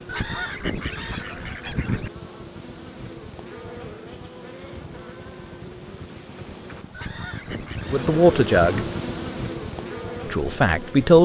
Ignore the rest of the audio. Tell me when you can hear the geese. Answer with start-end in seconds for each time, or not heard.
0.1-2.1, 6.9-8.9.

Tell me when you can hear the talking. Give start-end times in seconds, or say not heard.
7.9-8.8, 10.2-11.1.